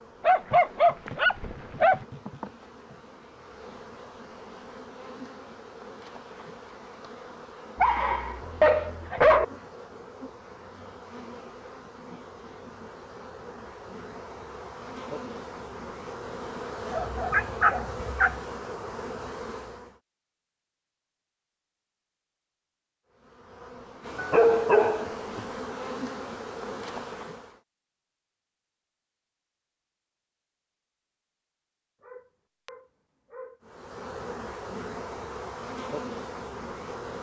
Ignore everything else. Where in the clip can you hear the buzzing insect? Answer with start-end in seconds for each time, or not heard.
0.0-20.0, 23.1-27.6, 33.6-37.1.